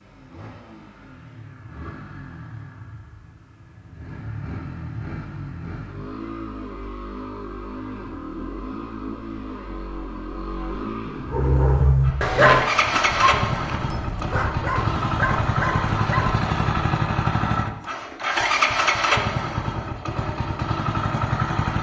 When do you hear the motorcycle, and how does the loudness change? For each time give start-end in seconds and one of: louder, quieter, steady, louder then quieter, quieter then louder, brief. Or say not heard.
0.0-21.7 louder.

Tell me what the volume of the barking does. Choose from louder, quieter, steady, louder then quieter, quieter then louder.
quieter then louder.